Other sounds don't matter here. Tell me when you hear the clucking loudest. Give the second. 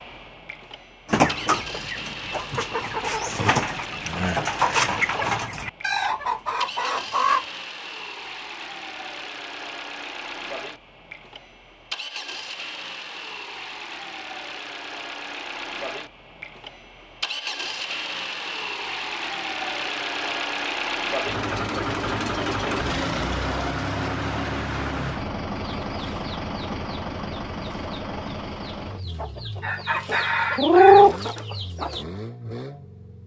31 s.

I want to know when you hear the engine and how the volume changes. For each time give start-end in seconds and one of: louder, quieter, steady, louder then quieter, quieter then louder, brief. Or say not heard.
0.0-33.2 louder then quieter.